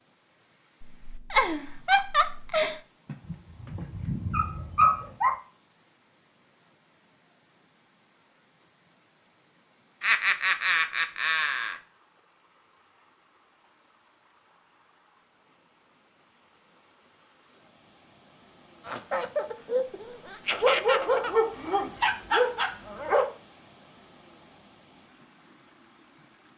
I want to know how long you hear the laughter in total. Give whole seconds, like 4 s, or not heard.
6 s.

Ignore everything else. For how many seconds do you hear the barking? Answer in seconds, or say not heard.
5 s.